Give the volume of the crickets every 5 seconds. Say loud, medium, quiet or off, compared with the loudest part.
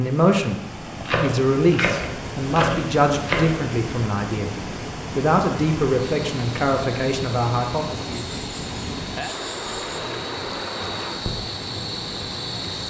off, medium, loud.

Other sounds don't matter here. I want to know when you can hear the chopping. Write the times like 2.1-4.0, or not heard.
1.1-3.5.